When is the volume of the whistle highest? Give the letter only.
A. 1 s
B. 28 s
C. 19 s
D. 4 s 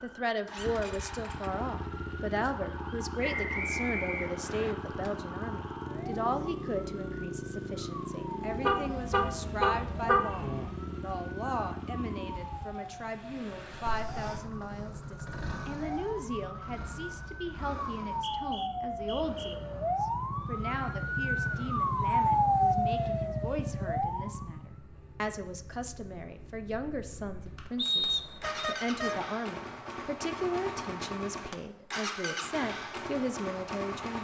B.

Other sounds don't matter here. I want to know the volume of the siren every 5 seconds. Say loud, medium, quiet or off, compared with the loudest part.
quiet, quiet, quiet, medium, loud, off, off.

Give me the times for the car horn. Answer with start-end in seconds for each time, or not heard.
8.5-10.7, 28.2-29.2.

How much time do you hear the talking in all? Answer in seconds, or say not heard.
34 s.